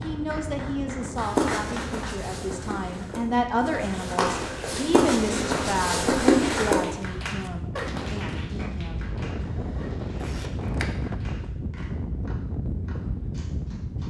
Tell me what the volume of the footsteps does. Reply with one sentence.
The loudness of the footsteps goes up.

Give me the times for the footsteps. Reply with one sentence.
The footsteps can be heard from 1.1 to 6.8 s.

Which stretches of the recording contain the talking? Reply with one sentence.
You can hear the talking from 0.0 to 9.1 s.